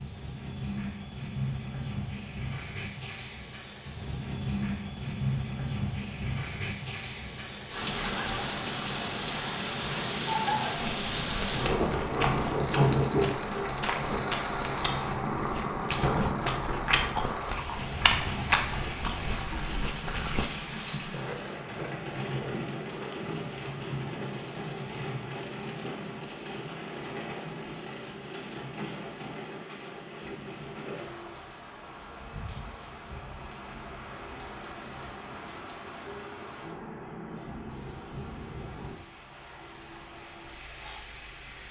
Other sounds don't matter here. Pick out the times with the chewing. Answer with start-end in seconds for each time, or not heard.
10.8-20.5.